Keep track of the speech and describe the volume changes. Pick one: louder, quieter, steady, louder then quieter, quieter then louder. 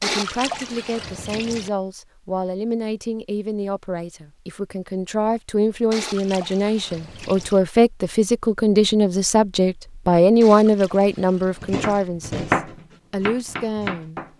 louder then quieter.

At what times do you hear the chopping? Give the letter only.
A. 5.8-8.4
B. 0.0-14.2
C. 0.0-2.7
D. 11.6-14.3
D.